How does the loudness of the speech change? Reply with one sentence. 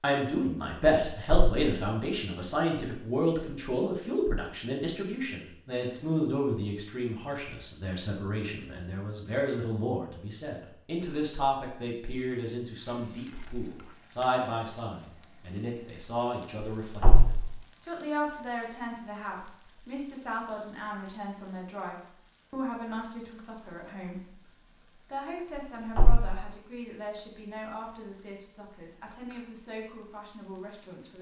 The volume of the speech goes down.